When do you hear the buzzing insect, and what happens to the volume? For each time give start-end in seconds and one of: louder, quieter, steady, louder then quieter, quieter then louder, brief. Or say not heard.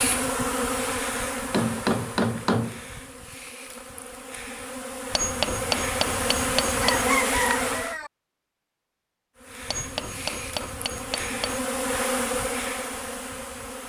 0.0-8.0 quieter then louder
9.3-13.8 louder then quieter.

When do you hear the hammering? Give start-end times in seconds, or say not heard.
1.4-2.9, 5.1-7.0, 9.7-11.6.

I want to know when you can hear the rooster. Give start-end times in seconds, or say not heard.
6.8-8.1.